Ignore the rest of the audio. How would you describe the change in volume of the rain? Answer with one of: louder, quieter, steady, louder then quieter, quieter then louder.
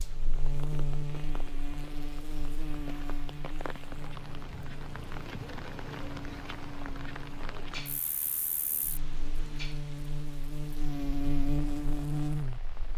louder then quieter.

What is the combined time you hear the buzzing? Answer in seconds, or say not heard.
13 s.